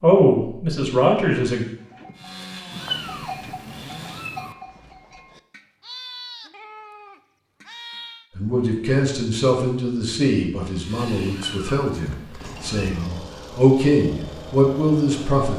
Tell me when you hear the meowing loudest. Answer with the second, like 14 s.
3 s.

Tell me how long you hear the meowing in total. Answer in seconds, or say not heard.
4 s.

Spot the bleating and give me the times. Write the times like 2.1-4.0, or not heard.
1.8-8.2.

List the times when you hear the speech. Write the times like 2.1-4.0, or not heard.
0.0-1.6, 8.3-15.5.